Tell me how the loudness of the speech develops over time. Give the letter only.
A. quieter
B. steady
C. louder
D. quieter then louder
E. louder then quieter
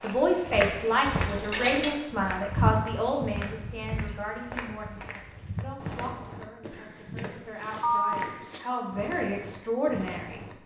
D.